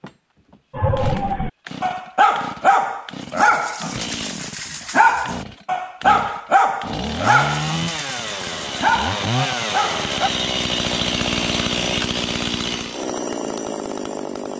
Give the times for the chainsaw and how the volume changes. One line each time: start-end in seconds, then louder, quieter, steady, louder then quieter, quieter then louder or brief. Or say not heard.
0.0-14.5 louder.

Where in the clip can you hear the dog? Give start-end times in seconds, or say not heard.
0.7-10.3.